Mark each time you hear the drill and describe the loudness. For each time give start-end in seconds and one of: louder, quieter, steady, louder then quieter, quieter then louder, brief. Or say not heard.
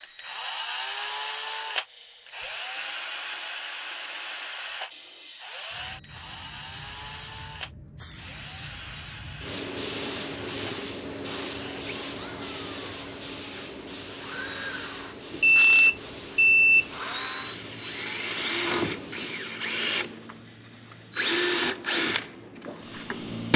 0.0-23.5 quieter then louder.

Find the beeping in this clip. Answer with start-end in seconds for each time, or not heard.
15.3-16.9.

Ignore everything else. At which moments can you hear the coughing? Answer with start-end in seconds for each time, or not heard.
not heard.